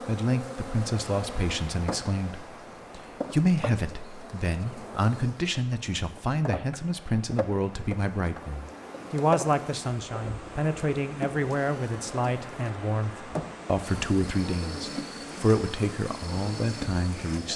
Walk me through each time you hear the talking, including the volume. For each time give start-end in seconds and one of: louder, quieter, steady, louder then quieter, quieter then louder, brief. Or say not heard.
0.1-17.5 steady.